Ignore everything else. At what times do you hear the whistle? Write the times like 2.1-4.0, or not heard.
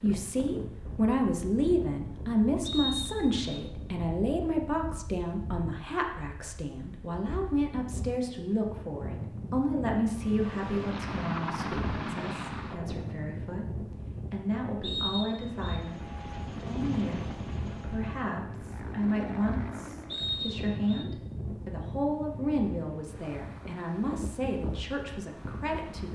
2.6-3.4, 14.8-15.8, 20.1-21.1.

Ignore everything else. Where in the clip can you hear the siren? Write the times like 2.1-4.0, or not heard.
not heard.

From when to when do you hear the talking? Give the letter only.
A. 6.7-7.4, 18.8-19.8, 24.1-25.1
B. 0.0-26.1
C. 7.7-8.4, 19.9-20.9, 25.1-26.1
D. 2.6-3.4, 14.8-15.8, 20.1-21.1
B.